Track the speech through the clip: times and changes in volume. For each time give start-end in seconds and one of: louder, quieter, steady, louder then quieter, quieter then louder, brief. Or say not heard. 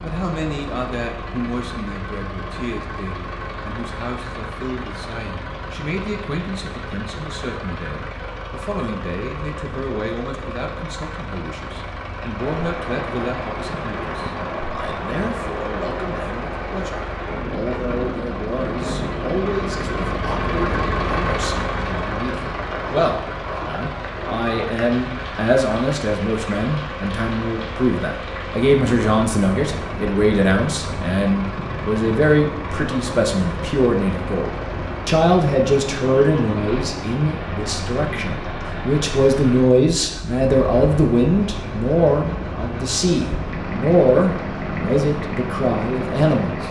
0.0-46.5 louder.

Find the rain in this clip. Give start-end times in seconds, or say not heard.
12.3-46.6.